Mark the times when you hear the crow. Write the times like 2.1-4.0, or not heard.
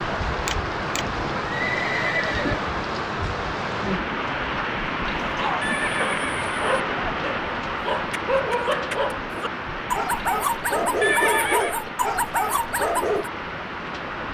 not heard.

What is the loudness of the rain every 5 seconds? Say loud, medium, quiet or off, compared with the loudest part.
loud, loud, medium.